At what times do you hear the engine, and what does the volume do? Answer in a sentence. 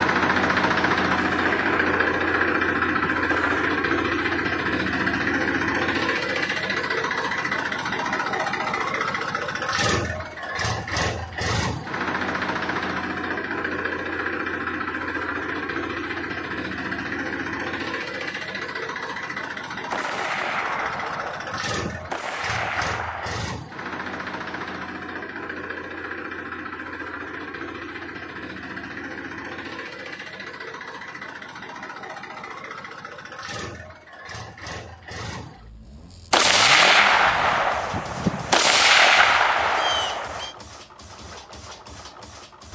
The engine can be heard from 0.0 to 42.6 s, getting quieter.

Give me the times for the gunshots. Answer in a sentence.
The gunshots can be heard from 1.1 to 3.8 s, from 19.9 to 23.4 s and from 36.3 to 40.5 s.